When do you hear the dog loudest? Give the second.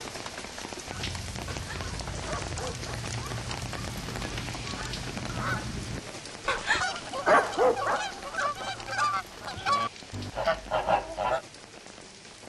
7 s.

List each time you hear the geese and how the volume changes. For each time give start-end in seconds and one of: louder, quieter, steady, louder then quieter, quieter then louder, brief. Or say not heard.
0.8-11.4 louder.